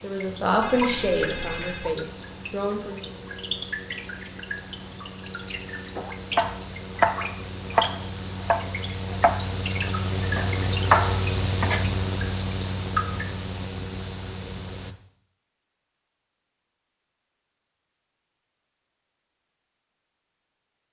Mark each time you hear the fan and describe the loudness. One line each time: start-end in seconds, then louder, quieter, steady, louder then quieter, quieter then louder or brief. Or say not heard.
0.0-14.9 louder.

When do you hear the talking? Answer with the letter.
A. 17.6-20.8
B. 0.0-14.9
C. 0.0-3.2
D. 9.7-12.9
C.